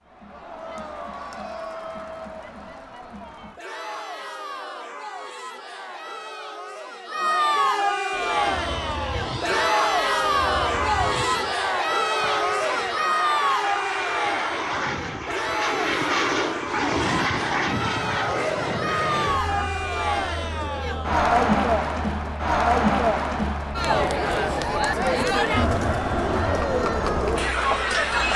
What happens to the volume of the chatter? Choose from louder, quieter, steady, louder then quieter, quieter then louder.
louder.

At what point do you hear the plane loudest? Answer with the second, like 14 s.
17 s.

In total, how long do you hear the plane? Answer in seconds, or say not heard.
20 s.